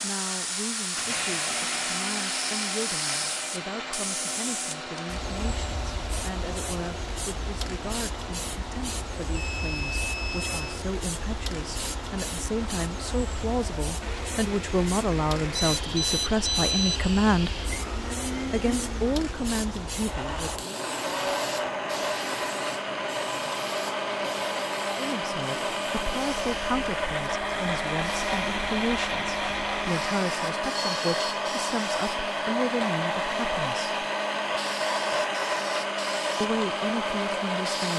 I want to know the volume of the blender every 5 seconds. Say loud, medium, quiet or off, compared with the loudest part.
medium, quiet, quiet, medium, loud, loud, loud, loud.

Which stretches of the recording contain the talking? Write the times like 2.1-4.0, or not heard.
0.0-17.6, 18.4-20.8, 24.9-34.0, 36.4-37.9.